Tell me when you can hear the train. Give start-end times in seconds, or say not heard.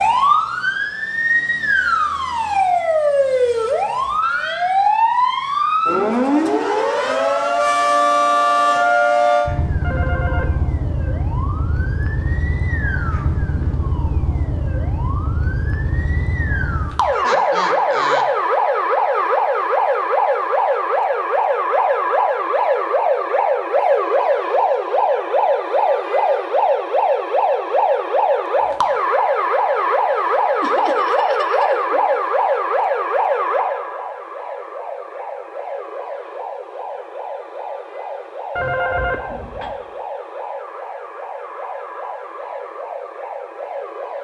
not heard.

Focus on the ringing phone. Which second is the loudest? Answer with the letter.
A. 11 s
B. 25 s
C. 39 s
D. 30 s
C.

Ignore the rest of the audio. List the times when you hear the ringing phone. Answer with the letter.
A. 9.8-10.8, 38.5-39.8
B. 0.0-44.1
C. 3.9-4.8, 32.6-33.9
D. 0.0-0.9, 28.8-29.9
A.